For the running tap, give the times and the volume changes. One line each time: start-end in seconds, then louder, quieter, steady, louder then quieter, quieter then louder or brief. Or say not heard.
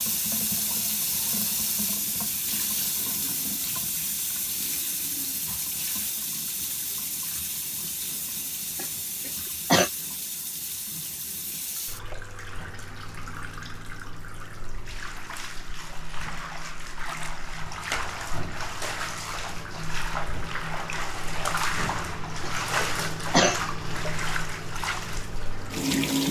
0.0-26.2 quieter then louder.